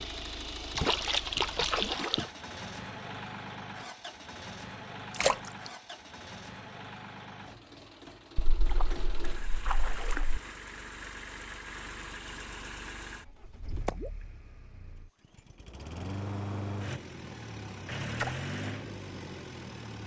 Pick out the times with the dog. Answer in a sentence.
The dog can't be heard in this clip.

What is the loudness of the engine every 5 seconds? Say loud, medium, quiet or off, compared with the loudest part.
loud, medium, medium, loud.